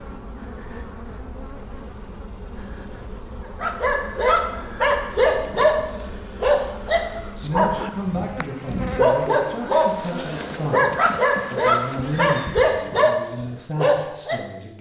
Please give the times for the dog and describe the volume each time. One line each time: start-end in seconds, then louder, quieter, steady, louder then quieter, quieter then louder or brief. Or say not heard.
3.6-14.4 steady.